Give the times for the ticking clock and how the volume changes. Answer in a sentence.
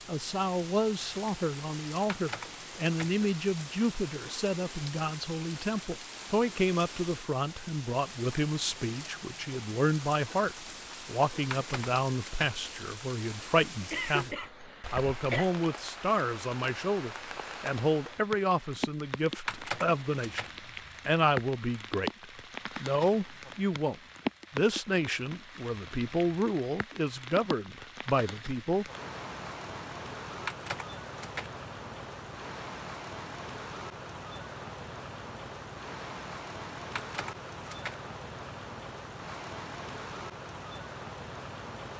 The ticking clock can't be heard in this clip.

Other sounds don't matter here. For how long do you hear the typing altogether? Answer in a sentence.
The typing can be heard for 5 seconds in total.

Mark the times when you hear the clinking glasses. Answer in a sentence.
The clinking glasses can't be heard in this clip.